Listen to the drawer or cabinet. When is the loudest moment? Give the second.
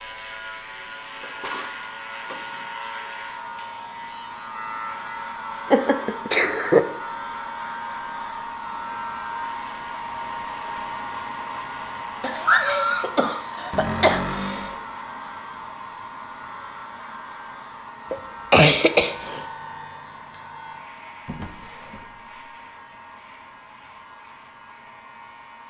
14 s.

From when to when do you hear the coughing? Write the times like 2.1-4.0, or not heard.
5.7-6.8, 12.2-14.2, 18.1-19.4.